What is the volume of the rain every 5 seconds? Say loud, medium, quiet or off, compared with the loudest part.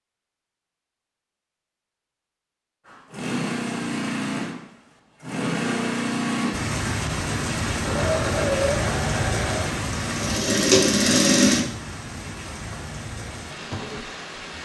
off, loud, medium.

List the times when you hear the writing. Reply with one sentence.
The writing can't be heard in this clip.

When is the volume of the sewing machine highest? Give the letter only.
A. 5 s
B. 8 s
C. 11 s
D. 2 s
C.